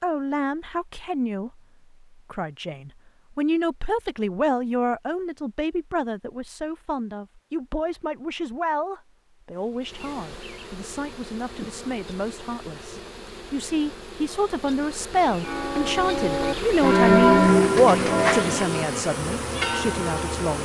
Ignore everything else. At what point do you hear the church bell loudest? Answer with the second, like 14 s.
17 s.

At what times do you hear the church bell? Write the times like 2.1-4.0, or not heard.
15.4-20.6.